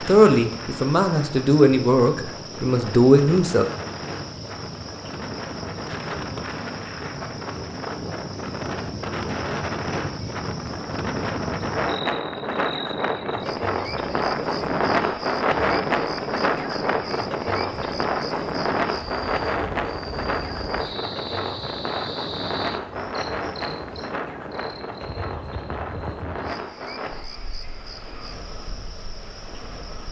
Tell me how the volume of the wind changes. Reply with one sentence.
The volume of the wind goes up, then down.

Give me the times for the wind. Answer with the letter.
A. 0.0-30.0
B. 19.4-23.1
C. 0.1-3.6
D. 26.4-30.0
A.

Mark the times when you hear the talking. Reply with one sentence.
You can hear the talking from 0.1 to 3.6 s.